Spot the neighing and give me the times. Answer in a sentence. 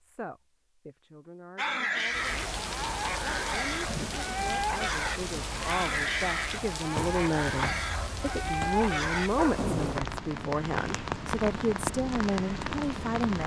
The neighing can't be heard in this clip.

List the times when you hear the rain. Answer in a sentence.
The rain can be heard from 2.0 to 13.4 s.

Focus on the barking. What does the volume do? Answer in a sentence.
The volume of the barking stays about the same.